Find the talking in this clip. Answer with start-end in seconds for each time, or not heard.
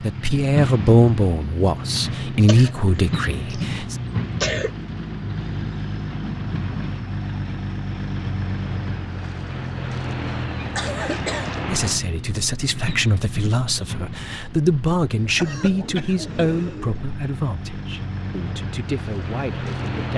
0.0-4.0, 11.7-20.1.